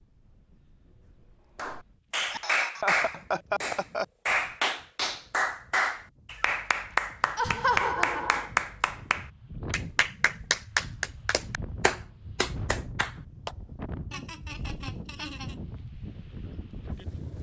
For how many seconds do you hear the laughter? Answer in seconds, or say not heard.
4 s.